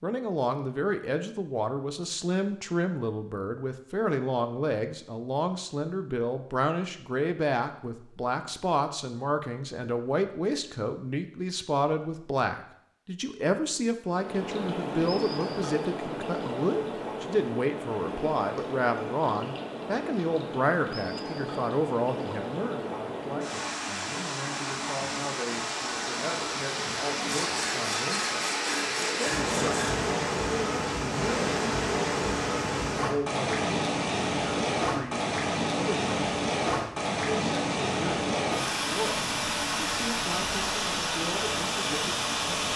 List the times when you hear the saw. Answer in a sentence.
You can hear the saw from 27.2 to 30.0 s.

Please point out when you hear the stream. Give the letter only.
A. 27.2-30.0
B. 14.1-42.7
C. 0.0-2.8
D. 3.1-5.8
B.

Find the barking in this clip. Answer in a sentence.
You can't hear the barking here.